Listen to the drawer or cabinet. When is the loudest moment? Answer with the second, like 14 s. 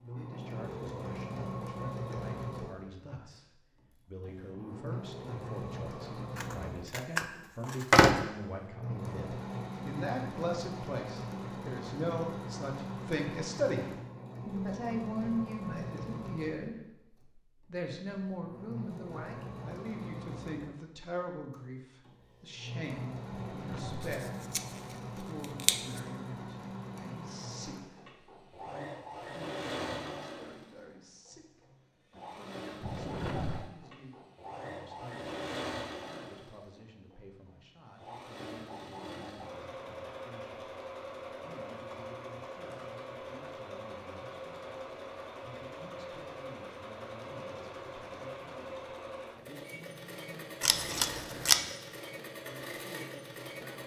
33 s.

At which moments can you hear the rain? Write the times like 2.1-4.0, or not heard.
not heard.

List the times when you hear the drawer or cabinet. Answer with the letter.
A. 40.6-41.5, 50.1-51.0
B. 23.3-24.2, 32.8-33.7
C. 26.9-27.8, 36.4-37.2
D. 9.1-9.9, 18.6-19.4
B.